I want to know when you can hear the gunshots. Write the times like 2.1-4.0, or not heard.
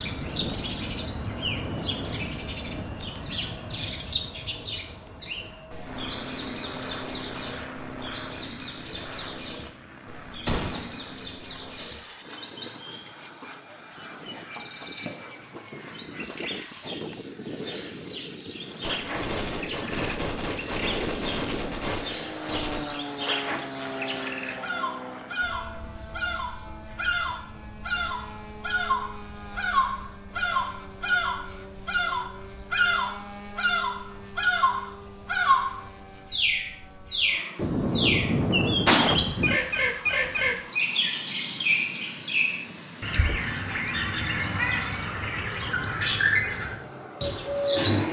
10.4-10.9, 18.8-22.9, 37.5-39.6.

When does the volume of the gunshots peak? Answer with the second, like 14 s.
39 s.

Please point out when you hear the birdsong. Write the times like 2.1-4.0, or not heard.
0.0-48.0.